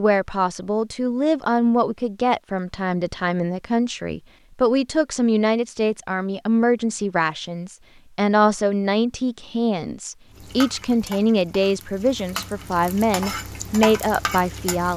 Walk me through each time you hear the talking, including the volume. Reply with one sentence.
You can hear the talking from 0.0 to 14.9 s, at a steady volume.